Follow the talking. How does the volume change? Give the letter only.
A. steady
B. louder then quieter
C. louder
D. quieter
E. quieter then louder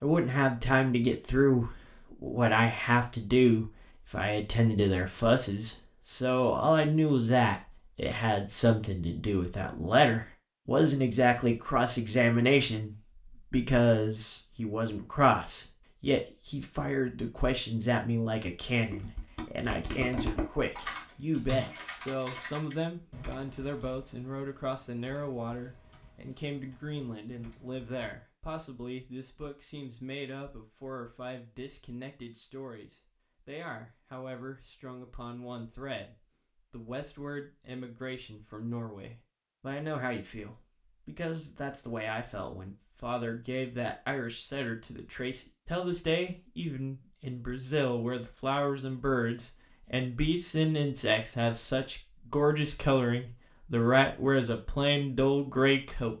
E.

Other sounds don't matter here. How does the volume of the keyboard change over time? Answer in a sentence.
The volume of the keyboard goes down.